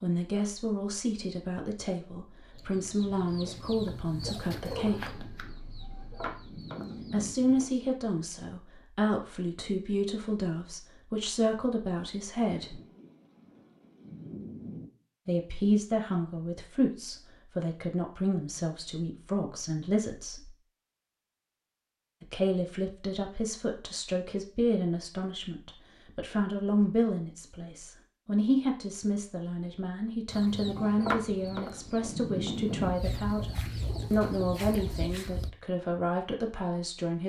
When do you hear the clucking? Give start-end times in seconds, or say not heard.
2.5-7.8, 30.3-35.5.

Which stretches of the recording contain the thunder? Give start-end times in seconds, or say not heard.
5.0-7.3, 12.6-14.8, 30.6-32.9.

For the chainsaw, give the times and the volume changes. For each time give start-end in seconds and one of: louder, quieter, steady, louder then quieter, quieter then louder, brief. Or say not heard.
not heard.